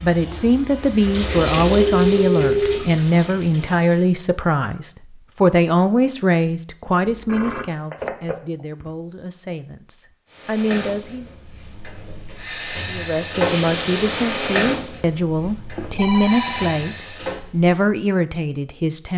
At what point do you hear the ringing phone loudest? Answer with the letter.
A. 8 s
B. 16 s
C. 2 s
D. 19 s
C.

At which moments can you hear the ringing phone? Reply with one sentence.
You can hear the ringing phone from 1.8 to 2.8 s, from 7.1 to 8.8 s and from 15.4 to 16.8 s.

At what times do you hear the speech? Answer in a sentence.
The speech can be heard from 0.0 to 11.2 s and from 12.9 to 19.1 s.